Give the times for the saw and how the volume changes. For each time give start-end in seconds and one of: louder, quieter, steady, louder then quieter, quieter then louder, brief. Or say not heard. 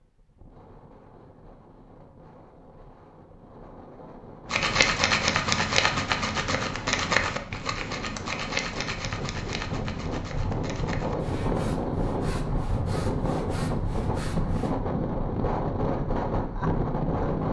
4.5-14.8 quieter.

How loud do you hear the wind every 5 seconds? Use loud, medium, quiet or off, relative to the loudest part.
quiet, medium, loud, loud.